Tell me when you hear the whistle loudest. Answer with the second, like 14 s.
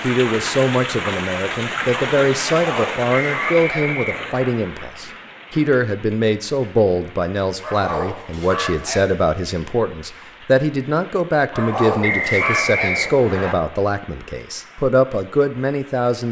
12 s.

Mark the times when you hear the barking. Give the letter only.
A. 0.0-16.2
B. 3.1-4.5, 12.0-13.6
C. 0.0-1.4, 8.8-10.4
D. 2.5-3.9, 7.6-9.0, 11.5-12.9
D.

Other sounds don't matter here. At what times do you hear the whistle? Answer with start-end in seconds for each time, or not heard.
3.1-4.5, 12.0-13.6.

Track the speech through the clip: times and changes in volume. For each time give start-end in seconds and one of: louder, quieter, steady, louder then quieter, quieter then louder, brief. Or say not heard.
0.0-16.2 steady.